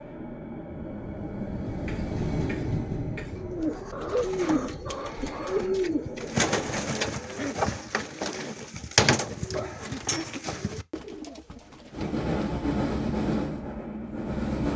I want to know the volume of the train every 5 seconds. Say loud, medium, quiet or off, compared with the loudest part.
medium, quiet, loud.